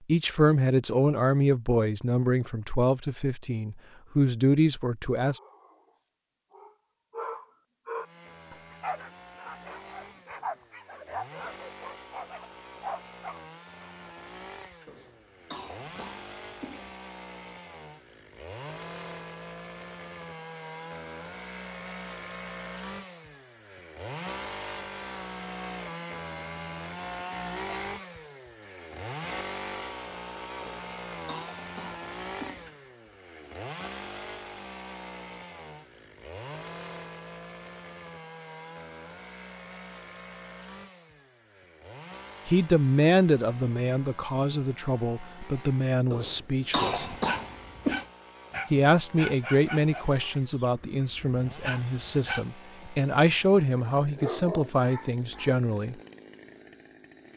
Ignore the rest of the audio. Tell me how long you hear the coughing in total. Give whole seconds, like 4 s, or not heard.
6 s.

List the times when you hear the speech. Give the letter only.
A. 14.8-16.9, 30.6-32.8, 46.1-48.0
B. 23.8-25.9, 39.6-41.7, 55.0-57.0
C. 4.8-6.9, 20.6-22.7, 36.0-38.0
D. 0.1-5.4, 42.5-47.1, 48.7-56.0
D.